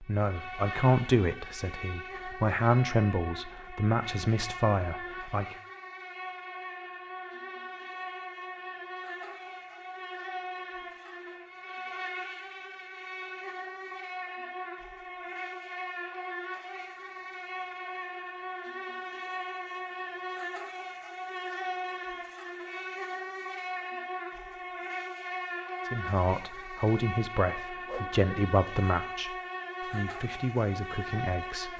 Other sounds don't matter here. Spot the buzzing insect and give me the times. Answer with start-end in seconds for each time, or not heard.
0.0-31.7.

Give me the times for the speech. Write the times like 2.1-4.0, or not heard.
0.0-5.5, 25.9-31.7.